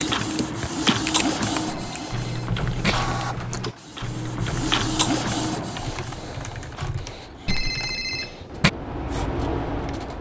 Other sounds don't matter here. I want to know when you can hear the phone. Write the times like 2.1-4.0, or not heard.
1.6-3.1, 7.5-8.7.